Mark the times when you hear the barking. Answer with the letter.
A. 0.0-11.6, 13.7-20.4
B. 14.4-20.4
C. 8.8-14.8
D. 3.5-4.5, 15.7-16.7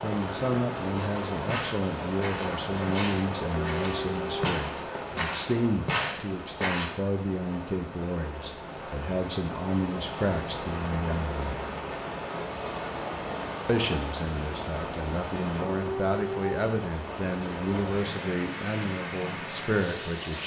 D.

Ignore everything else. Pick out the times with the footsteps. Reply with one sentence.
You can hear the footsteps from 0.9 to 6.9 s.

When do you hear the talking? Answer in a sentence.
You can hear the talking from 0.0 to 11.6 s and from 13.7 to 20.4 s.